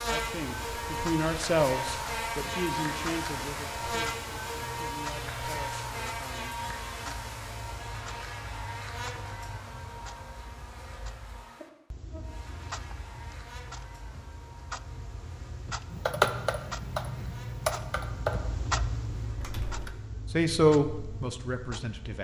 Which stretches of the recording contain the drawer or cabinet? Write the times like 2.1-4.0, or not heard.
not heard.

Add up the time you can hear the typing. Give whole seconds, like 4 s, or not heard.
4 s.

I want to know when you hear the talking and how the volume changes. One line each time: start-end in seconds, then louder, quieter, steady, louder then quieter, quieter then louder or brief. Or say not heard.
0.1-7.2 quieter
20.3-22.1 brief.